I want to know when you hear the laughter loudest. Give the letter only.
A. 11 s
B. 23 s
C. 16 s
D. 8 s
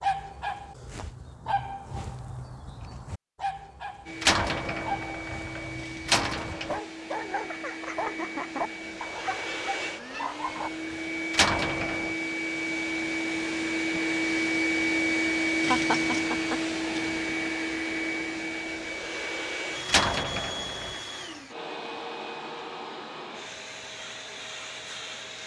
C.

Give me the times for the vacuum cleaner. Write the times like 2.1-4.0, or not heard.
4.0-25.4.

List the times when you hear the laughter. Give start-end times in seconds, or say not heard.
7.2-9.0, 15.7-16.6.